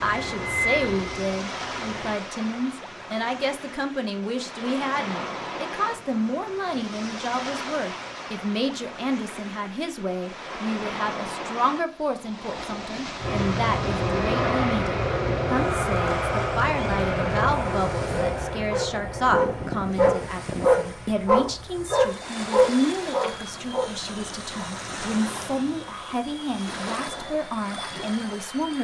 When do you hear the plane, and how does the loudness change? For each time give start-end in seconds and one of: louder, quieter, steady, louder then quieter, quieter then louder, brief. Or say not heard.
0.0-2.1 brief
13.2-28.7 quieter.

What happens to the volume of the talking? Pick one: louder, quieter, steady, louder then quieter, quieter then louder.
steady.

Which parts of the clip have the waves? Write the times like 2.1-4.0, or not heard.
0.0-28.7.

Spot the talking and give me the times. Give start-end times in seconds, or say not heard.
0.0-28.7.